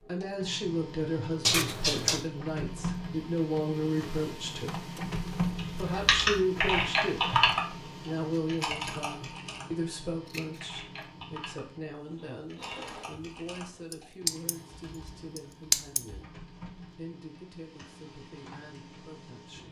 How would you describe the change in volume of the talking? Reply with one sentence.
The loudness of the talking goes down.